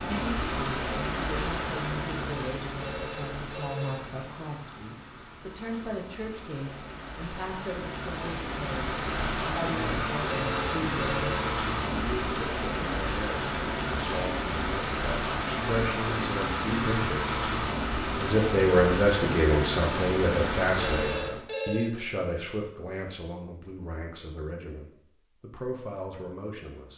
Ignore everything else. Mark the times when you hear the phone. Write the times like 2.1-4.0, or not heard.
2.8-4.2, 10.4-11.4, 20.8-21.9.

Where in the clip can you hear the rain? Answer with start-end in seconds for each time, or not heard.
0.0-21.4.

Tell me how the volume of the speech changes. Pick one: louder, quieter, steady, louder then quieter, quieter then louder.
louder then quieter.